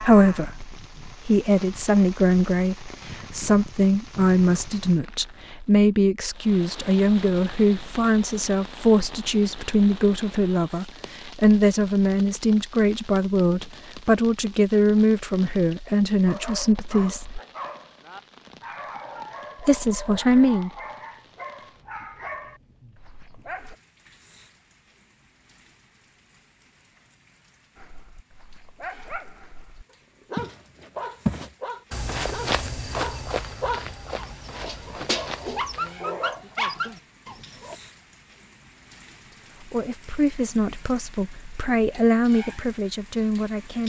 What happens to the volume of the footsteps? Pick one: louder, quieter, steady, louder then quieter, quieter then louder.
quieter.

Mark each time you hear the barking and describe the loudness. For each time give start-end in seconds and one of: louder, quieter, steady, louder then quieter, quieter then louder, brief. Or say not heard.
16.2-23.8 steady
27.8-37.8 louder.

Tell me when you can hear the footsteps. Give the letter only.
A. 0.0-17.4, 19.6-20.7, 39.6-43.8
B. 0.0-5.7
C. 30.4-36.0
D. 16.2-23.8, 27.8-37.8
C.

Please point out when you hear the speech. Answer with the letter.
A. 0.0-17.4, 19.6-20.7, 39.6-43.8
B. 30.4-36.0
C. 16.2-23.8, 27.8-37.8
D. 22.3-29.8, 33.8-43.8
A.